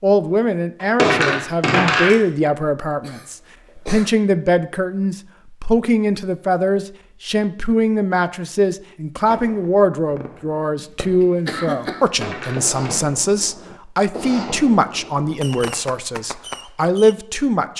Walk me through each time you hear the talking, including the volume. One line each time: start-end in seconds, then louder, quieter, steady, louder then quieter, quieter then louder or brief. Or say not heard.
0.0-17.7 steady.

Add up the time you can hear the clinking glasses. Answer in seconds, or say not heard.
2 s.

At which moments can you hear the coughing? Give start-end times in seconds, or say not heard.
3.0-4.1, 10.8-12.1.